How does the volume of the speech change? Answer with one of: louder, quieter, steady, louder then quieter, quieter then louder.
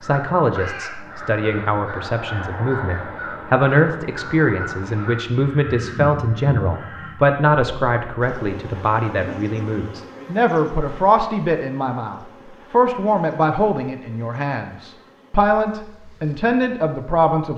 steady.